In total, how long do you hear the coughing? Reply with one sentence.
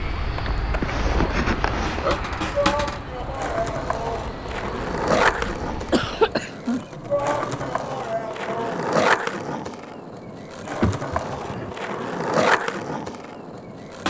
You can hear the coughing for 4 seconds altogether.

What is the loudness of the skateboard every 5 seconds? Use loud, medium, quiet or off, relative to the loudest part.
medium, loud, loud.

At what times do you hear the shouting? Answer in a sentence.
You can hear the shouting from 2.5 to 4.2 s and from 7.0 to 8.8 s.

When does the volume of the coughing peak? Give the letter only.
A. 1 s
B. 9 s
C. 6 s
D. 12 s
C.